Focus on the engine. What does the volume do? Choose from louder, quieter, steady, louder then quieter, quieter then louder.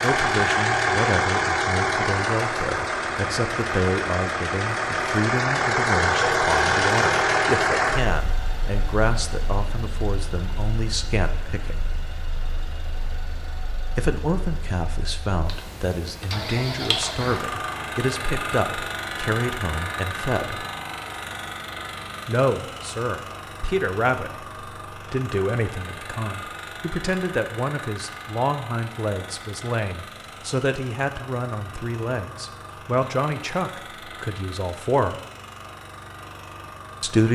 quieter.